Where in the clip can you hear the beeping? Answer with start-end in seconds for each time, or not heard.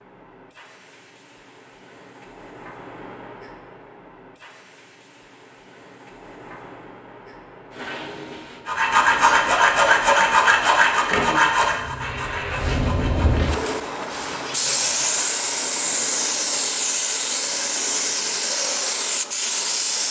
not heard.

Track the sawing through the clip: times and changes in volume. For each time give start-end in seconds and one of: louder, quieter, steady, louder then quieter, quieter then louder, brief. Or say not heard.
8.7-15.2 quieter.